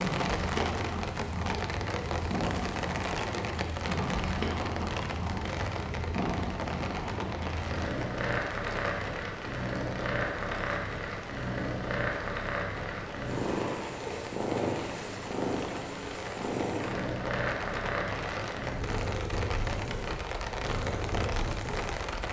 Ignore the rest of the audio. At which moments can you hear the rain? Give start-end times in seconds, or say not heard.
0.0-22.2.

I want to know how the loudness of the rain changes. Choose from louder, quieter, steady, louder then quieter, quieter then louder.
quieter then louder.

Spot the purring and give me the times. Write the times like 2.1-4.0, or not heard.
0.0-22.2.